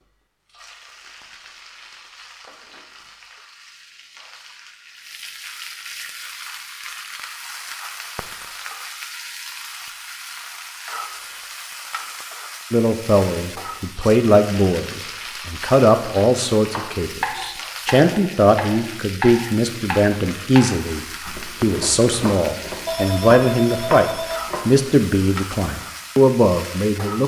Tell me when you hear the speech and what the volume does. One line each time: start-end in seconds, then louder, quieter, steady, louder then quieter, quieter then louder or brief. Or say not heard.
12.7-27.2 steady.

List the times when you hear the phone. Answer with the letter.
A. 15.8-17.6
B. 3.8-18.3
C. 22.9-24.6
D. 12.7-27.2
C.